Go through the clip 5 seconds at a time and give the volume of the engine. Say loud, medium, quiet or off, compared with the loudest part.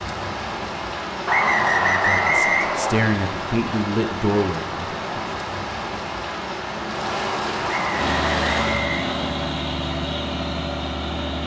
off, loud, loud.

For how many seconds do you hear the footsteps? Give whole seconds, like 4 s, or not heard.
not heard.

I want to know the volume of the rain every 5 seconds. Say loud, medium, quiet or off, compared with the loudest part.
loud, loud, off.